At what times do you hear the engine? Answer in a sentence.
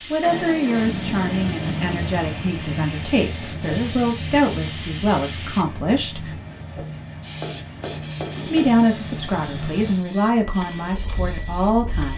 You can hear the engine from 0.1 to 12.1 s.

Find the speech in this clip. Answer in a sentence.
You can hear the speech from 0.1 to 6.3 s and from 8.4 to 12.1 s.